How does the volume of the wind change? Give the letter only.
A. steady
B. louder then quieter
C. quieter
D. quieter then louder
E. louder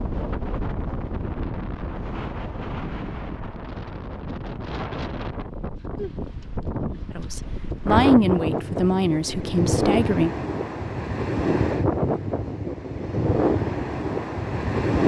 E.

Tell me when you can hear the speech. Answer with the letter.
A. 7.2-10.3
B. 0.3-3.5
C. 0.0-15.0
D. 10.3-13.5
A.